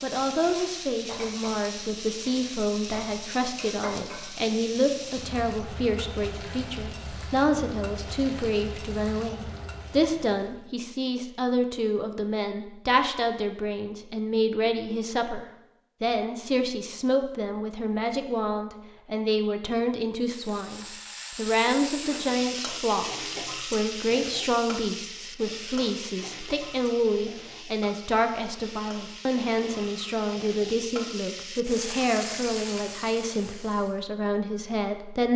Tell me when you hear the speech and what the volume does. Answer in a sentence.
You can hear the speech from 0.0 to 35.3 s, at a steady volume.